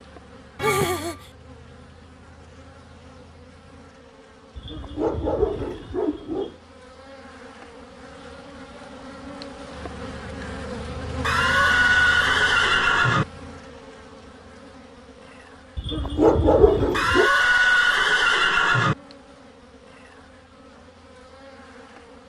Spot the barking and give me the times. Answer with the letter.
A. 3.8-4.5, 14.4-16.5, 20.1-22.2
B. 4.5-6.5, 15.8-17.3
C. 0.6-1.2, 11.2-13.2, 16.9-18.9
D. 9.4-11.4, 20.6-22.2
B.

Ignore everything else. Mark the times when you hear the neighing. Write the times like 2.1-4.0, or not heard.
0.6-1.2, 11.2-13.2, 16.9-18.9.